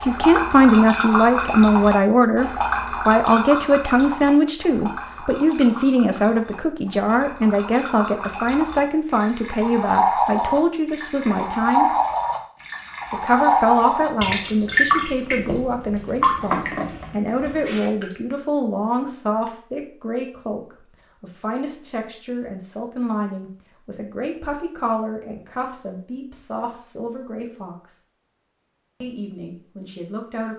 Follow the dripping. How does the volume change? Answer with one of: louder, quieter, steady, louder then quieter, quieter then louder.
quieter then louder.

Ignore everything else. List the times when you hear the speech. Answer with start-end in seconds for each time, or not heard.
0.1-11.9, 13.1-20.6, 21.2-28.0, 29.0-30.5.